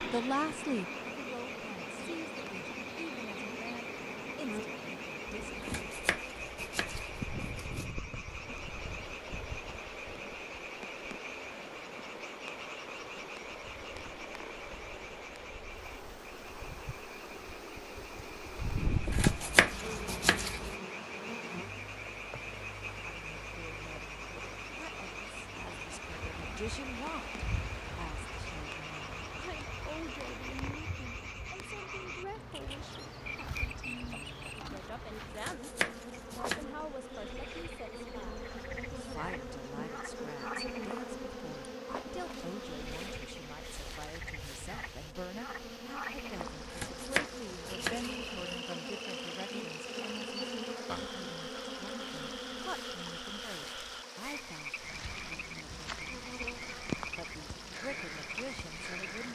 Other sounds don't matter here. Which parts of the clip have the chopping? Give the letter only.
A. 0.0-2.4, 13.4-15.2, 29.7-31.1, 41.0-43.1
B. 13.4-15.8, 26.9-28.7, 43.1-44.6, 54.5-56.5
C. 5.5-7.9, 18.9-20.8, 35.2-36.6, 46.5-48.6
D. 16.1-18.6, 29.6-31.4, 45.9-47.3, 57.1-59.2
C.